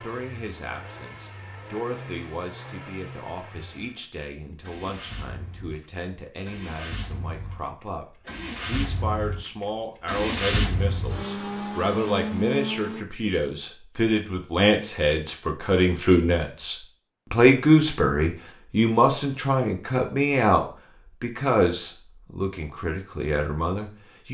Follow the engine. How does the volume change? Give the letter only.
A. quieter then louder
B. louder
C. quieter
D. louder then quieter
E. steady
B.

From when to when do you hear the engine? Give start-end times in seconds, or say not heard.
0.0-13.1.